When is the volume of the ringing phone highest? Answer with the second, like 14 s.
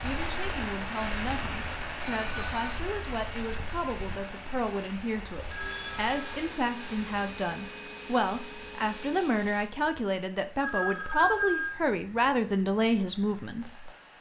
11 s.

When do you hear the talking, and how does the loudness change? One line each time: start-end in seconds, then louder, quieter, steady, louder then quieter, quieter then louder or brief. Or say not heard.
0.0-13.9 louder.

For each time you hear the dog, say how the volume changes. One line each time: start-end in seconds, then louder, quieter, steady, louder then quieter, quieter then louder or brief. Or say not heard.
not heard.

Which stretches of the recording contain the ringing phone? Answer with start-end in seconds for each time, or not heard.
2.0-2.8, 5.5-6.5, 10.6-11.8.